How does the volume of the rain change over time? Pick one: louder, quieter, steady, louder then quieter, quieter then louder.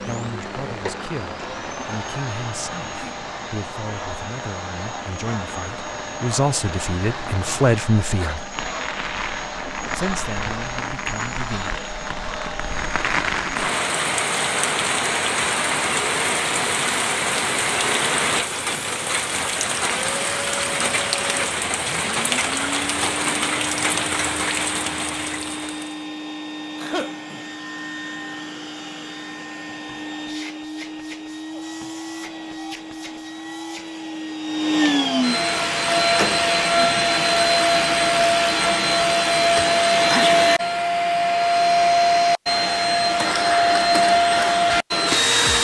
louder.